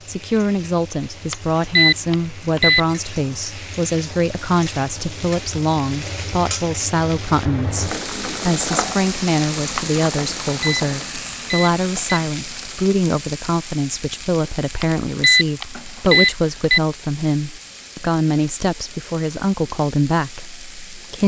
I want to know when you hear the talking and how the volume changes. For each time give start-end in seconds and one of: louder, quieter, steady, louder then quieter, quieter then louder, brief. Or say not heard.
0.1-21.2 steady.